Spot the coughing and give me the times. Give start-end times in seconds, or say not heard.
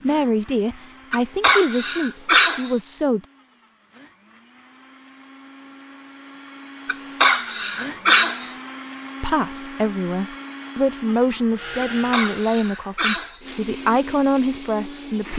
1.1-2.8, 6.8-8.5, 11.8-13.4.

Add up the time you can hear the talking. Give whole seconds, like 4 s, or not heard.
9 s.